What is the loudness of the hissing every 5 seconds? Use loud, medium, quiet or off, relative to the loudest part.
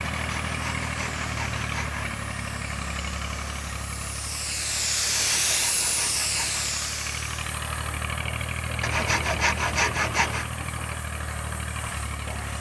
medium, loud, quiet.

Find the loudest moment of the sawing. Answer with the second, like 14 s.
10 s.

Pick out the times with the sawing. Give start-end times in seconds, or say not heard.
0.1-2.2, 5.0-6.7, 8.8-10.5.